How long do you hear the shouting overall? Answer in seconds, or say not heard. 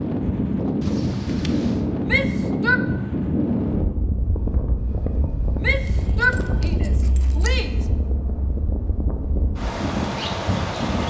3 s.